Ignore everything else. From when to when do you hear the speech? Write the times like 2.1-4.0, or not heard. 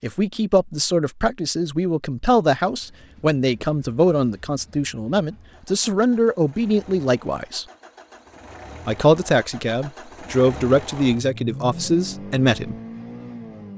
0.0-7.7, 8.8-12.8.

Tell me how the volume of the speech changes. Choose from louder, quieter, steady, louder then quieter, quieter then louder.
steady.